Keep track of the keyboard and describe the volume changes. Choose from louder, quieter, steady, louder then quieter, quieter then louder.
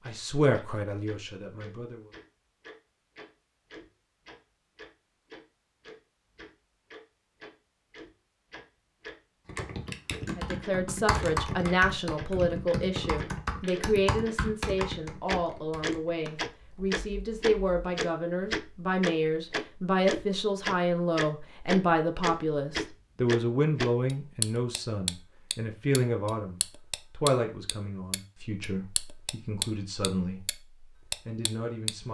quieter.